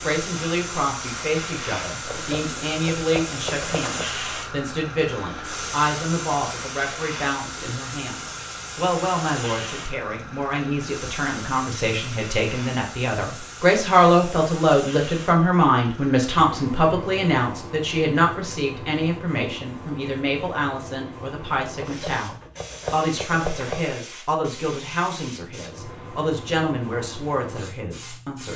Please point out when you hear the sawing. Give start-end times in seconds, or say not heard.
2.0-4.0, 21.8-23.8.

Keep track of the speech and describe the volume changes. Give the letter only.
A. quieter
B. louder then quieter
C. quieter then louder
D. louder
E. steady
B.